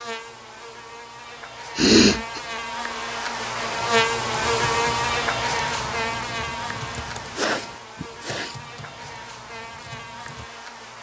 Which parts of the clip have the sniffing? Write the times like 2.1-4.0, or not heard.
1.8-2.4, 7.3-8.6.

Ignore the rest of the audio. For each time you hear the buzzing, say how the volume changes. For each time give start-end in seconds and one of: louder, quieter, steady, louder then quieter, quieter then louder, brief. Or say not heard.
0.0-10.9 louder then quieter.